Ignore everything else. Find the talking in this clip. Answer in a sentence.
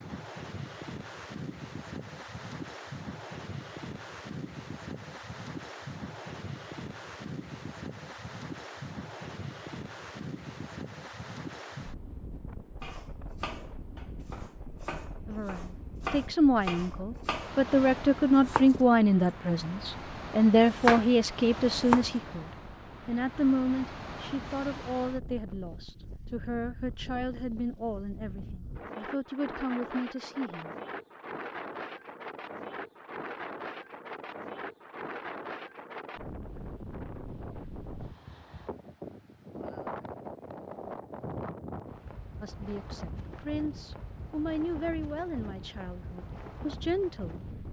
You can hear the talking from 15.2 to 30.8 s and from 42.4 to 47.5 s.